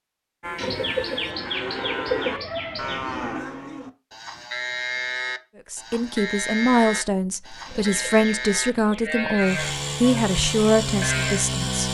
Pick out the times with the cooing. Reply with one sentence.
The cooing can be heard from 0.6 to 3.4 s and from 7.7 to 9.3 s.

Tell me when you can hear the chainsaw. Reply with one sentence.
You can hear the chainsaw from 9.3 to 11.8 s.